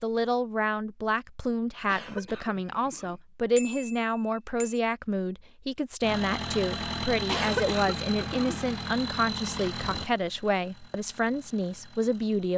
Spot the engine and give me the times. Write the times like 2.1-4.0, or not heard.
6.0-12.5.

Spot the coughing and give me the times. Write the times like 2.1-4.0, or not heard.
1.9-3.2, 7.2-8.7.